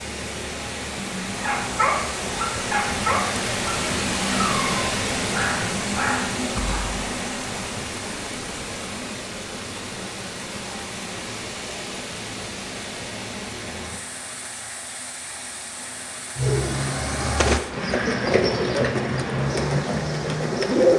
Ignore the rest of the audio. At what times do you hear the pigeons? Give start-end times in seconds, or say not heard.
16.4-20.9.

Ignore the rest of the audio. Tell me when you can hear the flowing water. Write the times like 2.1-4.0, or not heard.
0.0-20.9.